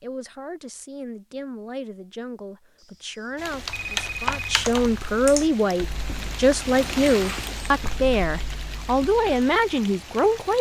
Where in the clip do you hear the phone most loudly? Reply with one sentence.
The loudest moment of the phone is at 4 seconds.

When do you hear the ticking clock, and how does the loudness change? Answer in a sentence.
The ticking clock can't be heard in this clip.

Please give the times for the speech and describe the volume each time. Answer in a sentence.
You can hear the speech from 0.0 to 10.5 s, getting louder.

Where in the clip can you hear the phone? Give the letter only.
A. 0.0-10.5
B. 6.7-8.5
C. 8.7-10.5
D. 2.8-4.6
D.